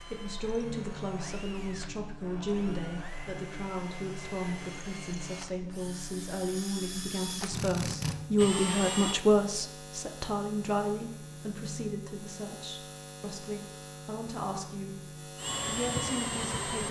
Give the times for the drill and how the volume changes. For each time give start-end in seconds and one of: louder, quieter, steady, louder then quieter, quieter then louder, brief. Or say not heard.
0.0-9.2 louder
15.3-16.8 brief.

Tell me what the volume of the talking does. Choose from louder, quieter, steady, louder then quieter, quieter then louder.
louder then quieter.